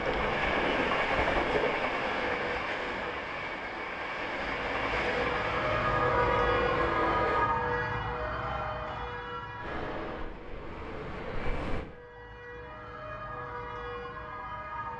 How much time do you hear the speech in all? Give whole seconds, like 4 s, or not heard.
not heard.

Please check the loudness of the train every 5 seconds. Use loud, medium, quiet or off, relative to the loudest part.
loud, loud, medium.